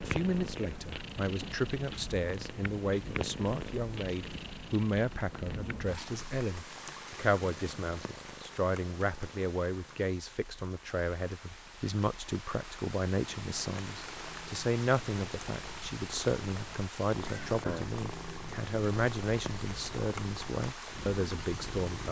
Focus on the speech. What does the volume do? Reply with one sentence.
The loudness of the speech stays about the same.